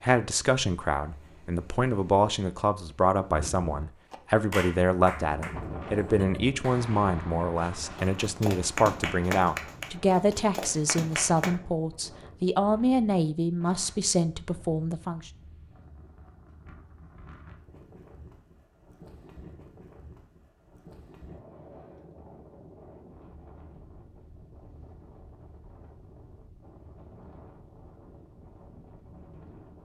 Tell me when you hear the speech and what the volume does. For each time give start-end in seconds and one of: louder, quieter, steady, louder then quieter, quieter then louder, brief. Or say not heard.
0.0-15.3 steady.